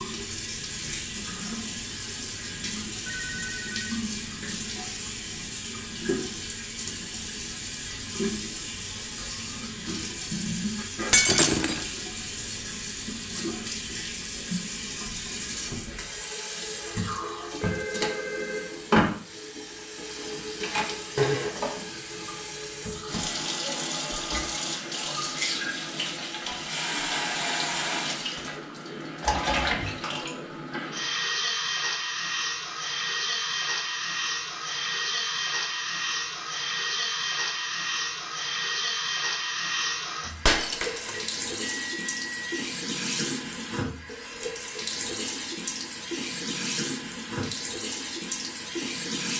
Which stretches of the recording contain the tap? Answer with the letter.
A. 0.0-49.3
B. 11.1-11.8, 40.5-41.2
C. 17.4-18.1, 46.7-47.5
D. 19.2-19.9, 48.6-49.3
A.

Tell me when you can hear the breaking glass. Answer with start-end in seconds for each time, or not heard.
11.1-11.8, 40.5-41.2.